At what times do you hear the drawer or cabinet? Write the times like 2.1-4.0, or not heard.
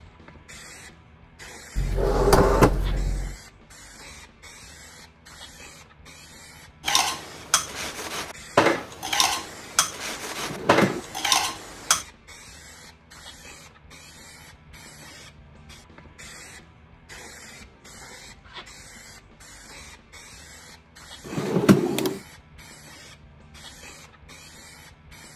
1.8-3.4, 10.4-11.1, 21.2-22.2.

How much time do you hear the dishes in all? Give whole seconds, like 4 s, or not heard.
5 s.